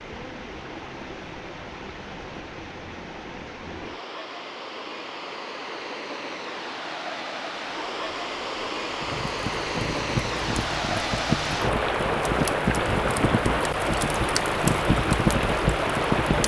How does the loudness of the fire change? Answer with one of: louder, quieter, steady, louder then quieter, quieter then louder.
louder.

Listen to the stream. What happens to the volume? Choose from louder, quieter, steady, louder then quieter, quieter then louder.
louder.